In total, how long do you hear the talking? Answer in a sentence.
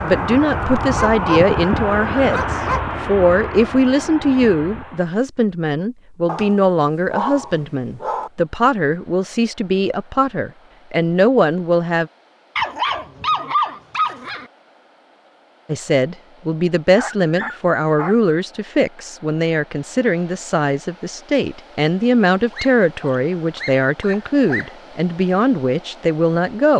The talking can be heard for 23 seconds in total.